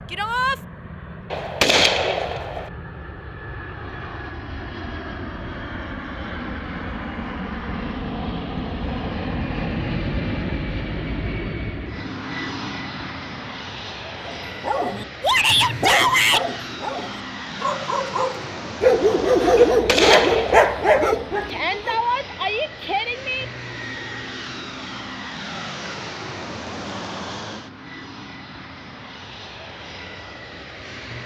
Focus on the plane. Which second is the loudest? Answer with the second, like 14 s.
10 s.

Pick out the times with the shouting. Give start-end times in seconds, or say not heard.
0.1-0.6, 15.2-16.4, 21.4-23.4.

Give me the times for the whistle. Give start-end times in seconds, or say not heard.
not heard.